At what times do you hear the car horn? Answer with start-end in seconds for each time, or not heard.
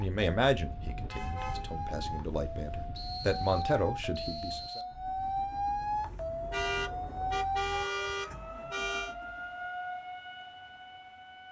1.1-2.9, 6.5-9.2.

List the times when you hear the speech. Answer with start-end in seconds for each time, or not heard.
0.0-4.8.